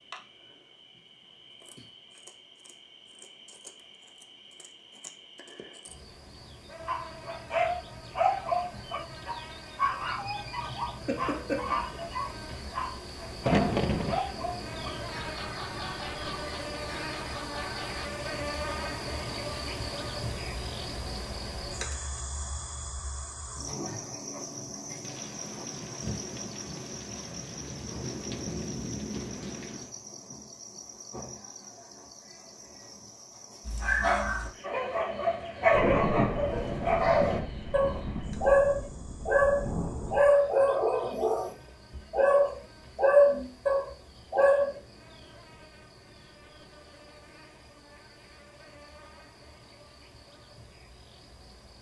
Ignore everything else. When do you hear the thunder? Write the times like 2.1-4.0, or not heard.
13.4-14.2, 25.0-29.9, 35.6-40.4.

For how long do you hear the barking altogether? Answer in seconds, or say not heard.
22 s.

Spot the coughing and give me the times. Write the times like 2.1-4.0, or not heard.
11.1-11.8.